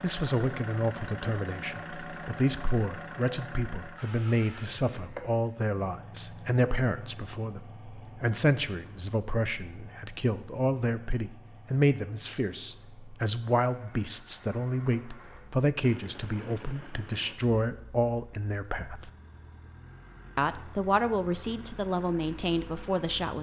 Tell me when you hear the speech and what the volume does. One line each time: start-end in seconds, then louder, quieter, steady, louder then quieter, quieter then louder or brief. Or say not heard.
0.0-19.1 steady
20.4-23.3 brief.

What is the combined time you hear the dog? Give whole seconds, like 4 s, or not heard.
not heard.